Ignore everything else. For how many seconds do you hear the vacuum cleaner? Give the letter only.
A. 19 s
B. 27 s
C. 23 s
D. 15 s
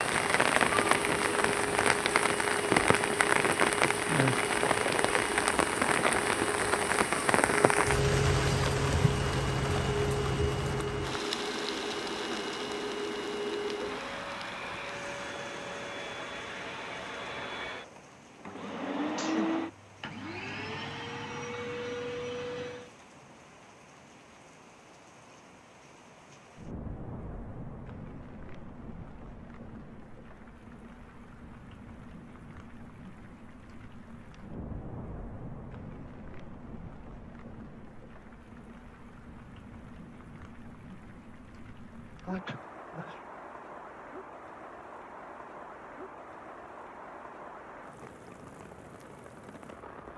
C.